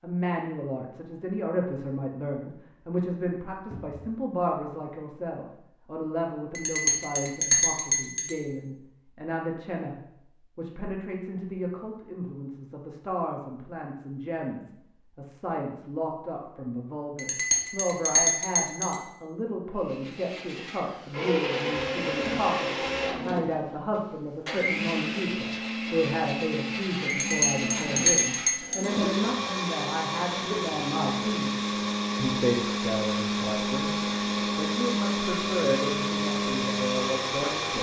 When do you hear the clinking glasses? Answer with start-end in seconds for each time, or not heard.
6.5-8.3, 17.1-19.0, 27.1-28.9.